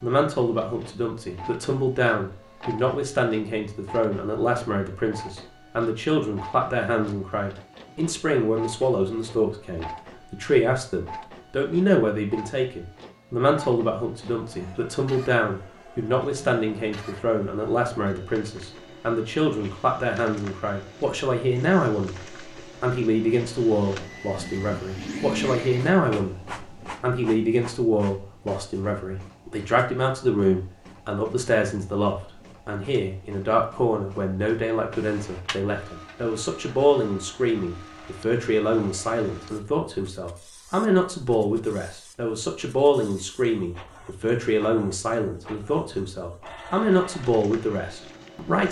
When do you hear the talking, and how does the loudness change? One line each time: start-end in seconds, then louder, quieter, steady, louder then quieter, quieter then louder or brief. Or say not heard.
0.0-48.6 steady.